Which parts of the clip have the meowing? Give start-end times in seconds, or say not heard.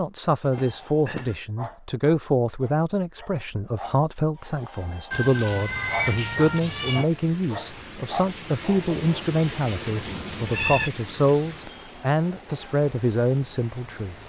0.4-1.4, 5.1-7.0, 10.1-10.9.